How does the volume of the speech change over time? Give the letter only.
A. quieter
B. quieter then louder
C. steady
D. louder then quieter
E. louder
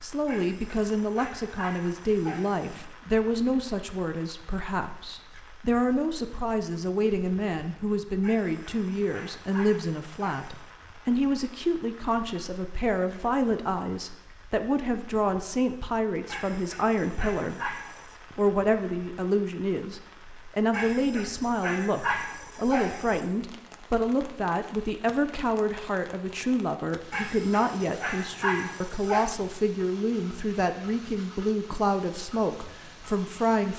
C.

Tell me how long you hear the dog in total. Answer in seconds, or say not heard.
12 s.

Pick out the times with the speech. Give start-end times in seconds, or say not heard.
0.0-17.8, 18.4-33.7.